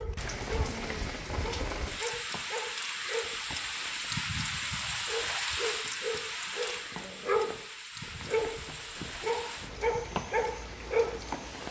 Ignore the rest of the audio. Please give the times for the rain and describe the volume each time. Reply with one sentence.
You can hear the rain from 0.0 to 11.6 s, getting quieter.